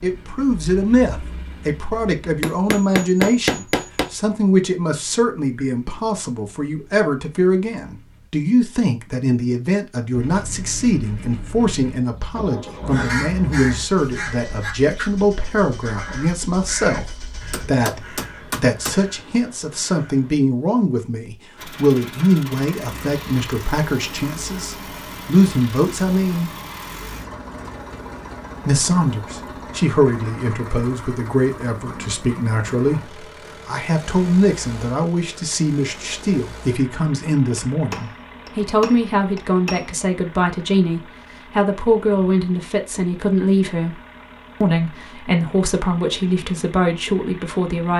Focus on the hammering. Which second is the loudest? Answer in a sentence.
The volume of the hammering peaks at 3 seconds.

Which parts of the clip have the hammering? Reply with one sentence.
You can hear the hammering from 2.4 to 4.1 s, from 17.5 to 19.0 s and from 37.7 to 40.0 s.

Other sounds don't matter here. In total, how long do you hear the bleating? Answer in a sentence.
You can't hear the bleating here.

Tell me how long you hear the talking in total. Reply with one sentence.
You can hear the talking for 45 seconds altogether.